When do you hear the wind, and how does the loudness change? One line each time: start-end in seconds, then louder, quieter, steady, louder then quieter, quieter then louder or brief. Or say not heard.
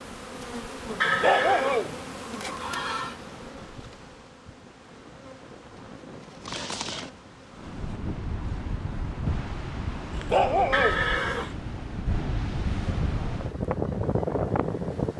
0.0-15.1 louder.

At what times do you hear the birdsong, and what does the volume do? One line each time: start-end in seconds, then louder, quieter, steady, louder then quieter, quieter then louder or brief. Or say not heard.
not heard.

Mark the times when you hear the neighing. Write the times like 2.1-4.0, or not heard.
1.0-3.1, 6.5-7.1, 10.7-11.6.